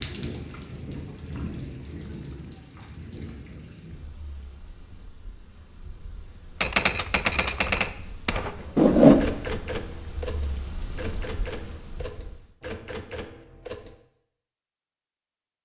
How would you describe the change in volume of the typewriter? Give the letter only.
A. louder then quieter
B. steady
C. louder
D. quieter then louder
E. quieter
E.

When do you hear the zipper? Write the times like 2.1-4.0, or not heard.
8.8-9.3.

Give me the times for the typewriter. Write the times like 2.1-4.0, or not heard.
6.6-13.9.